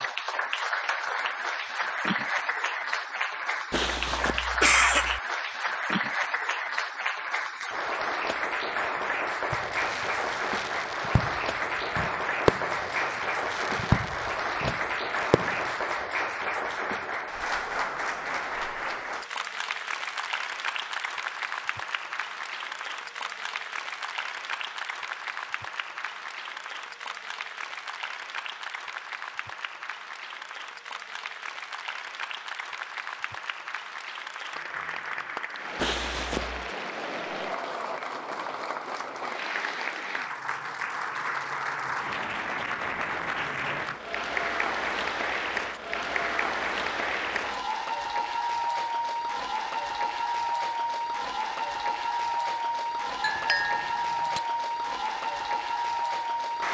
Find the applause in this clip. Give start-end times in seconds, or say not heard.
0.0-56.6.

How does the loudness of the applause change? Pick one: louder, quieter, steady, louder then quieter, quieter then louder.
quieter then louder.